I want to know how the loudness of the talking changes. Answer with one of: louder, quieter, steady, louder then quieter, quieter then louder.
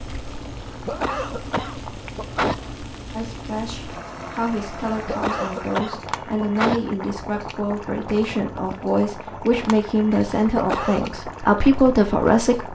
louder.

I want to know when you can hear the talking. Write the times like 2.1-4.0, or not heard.
3.1-12.7.